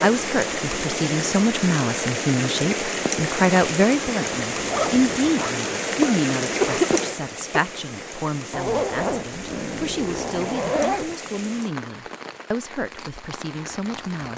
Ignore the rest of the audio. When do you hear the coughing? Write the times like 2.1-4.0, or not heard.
6.0-7.6.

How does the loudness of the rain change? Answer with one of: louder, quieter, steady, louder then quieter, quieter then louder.
quieter.